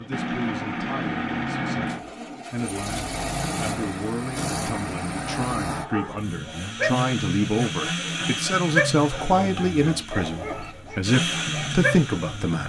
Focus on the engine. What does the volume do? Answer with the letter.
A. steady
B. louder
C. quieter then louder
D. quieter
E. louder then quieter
A.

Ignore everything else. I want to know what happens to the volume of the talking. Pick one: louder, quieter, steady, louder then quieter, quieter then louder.
louder.